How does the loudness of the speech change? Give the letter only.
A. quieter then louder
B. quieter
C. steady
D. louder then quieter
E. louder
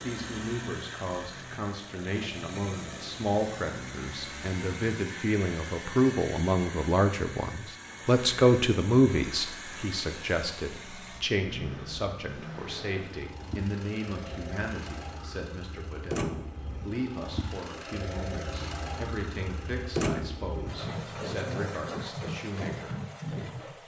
D.